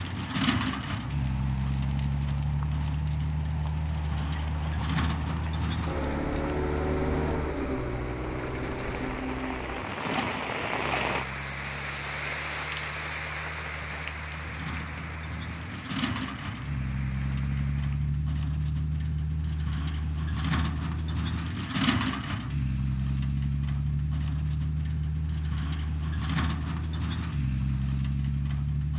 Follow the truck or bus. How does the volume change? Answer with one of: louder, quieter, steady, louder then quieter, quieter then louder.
quieter then louder.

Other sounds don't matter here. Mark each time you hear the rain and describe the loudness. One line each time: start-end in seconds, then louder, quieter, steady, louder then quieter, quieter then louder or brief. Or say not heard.
0.0-18.2 louder then quieter.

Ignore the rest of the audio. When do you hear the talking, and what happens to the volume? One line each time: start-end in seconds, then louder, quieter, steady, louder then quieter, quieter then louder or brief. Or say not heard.
not heard.